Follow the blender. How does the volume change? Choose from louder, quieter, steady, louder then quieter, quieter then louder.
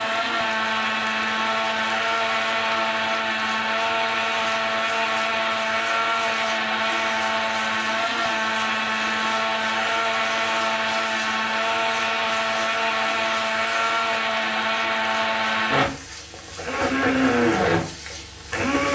steady.